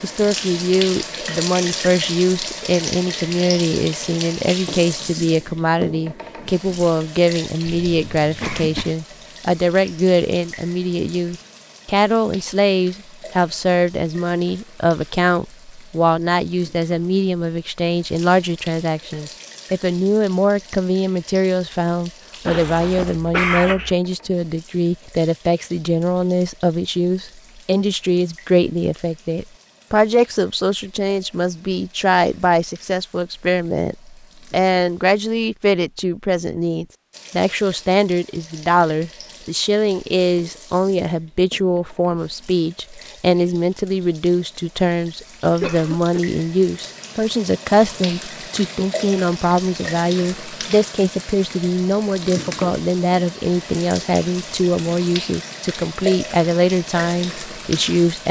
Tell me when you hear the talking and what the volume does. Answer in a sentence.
You can hear the talking from 0.0 to 58.2 s, at a steady volume.